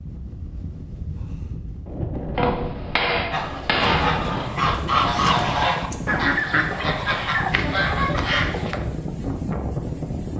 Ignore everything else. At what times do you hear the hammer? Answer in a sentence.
The hammer can be heard from 2.3 to 4.2 s.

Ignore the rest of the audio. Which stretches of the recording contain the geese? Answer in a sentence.
The geese can be heard from 3.3 to 8.8 s.